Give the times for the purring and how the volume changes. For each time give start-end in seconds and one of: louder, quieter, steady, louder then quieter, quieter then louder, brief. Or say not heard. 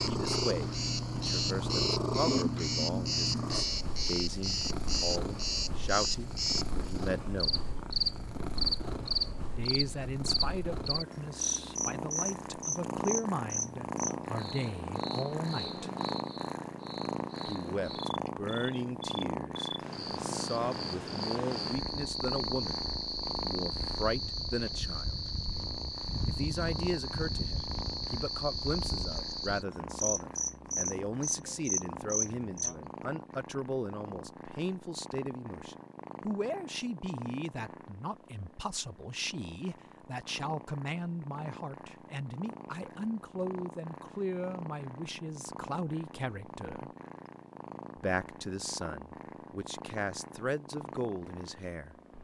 0.0-52.1 quieter.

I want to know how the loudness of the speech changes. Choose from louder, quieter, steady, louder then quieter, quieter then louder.
steady.